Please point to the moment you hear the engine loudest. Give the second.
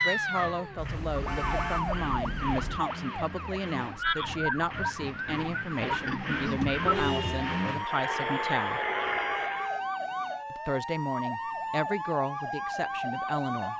9 s.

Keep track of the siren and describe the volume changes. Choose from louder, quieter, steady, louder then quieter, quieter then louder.
steady.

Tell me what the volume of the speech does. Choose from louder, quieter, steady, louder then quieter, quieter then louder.
steady.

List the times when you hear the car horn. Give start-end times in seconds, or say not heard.
0.8-2.8, 5.7-7.7, 9.4-9.9.